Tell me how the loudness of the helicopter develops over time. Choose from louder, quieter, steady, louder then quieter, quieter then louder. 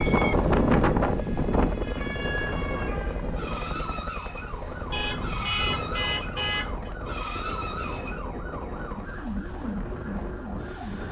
quieter.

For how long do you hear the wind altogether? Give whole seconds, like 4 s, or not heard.
11 s.